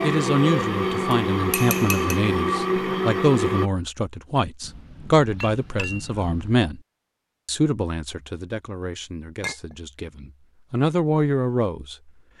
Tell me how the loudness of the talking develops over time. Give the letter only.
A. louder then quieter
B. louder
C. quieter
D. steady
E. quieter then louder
E.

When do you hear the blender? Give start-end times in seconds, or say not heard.
0.0-3.7.